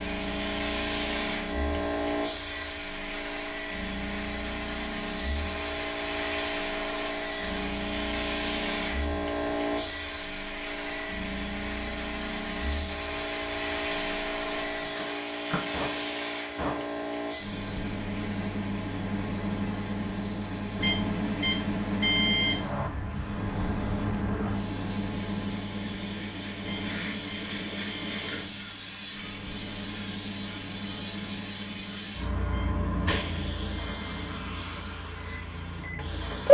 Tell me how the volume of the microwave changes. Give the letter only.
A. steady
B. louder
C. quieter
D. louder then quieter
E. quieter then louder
D.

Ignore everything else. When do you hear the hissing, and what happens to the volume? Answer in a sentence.
You can hear the hissing from 0.0 to 36.4 s, getting quieter.